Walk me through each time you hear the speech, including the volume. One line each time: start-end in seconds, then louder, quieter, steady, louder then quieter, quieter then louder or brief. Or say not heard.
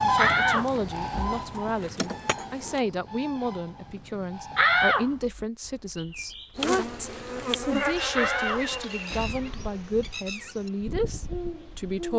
0.0-12.1 steady.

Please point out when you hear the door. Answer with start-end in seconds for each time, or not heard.
0.1-1.9, 4.5-5.5, 8.1-9.3.